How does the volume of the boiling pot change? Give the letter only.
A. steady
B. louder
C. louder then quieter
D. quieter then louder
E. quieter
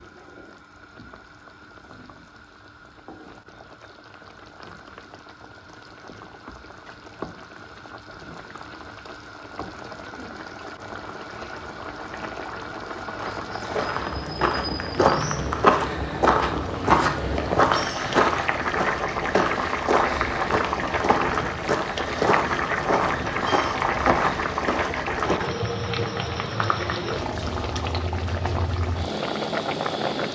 B.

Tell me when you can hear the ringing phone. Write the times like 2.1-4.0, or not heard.
not heard.